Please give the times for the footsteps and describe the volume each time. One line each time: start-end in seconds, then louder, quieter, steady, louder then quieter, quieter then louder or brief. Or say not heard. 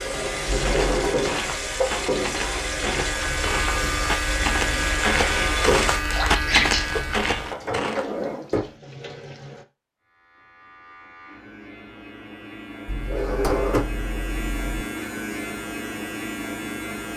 0.5-8.1 louder.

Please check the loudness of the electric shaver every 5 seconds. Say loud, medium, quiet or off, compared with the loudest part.
loud, loud, medium, loud.